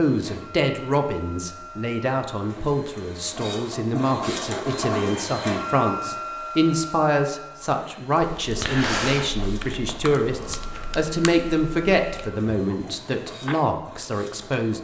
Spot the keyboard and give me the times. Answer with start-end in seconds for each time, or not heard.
8.2-13.6.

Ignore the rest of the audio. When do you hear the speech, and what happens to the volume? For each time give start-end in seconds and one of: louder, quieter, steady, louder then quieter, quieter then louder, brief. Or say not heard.
0.0-14.8 steady.